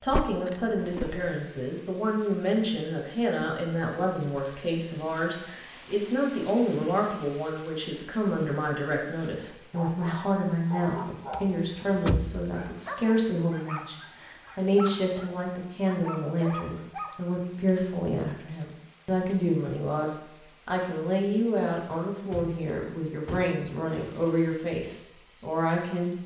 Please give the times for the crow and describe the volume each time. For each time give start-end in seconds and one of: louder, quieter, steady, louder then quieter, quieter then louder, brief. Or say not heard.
not heard.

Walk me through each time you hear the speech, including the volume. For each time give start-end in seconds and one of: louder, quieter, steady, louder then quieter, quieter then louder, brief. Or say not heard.
0.0-26.1 steady.